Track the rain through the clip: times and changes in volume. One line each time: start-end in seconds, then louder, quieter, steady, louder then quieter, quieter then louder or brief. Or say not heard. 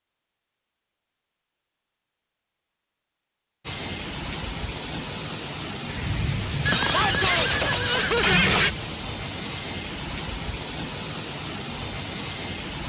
3.6-12.8 steady.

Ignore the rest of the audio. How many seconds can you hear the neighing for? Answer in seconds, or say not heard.
2 s.